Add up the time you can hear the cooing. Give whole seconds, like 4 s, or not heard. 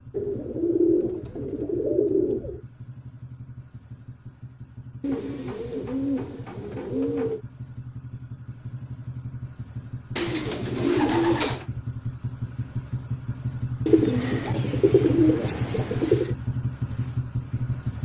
9 s.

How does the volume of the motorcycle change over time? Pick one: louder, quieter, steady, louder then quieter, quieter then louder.
louder.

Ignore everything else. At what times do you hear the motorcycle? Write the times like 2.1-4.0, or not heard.
0.0-18.0.